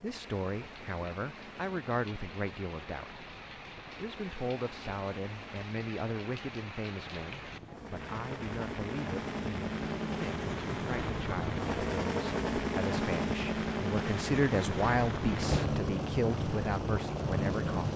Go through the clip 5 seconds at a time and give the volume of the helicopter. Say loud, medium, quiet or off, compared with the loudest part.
quiet, medium, loud, loud.